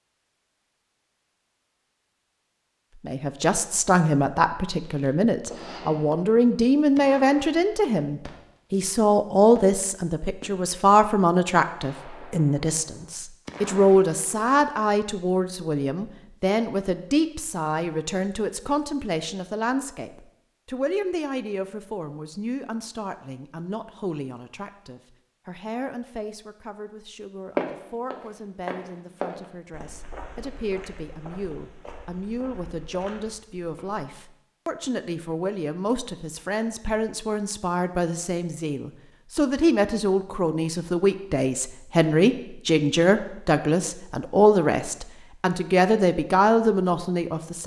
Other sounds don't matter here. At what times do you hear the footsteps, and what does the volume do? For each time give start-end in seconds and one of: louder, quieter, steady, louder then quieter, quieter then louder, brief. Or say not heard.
27.6-34.0 quieter.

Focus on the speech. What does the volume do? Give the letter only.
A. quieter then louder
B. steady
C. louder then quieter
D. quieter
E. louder
A.